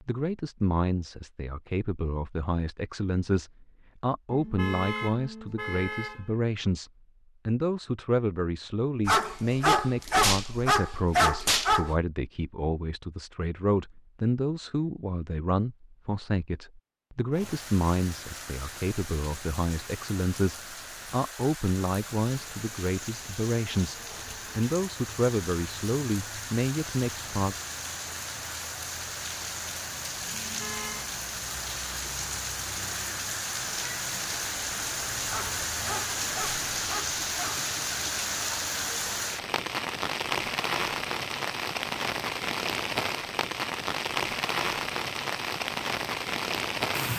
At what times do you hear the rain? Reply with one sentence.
You can hear the rain from 17.3 to 47.1 s.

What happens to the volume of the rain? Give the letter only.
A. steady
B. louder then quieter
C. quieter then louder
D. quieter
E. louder
E.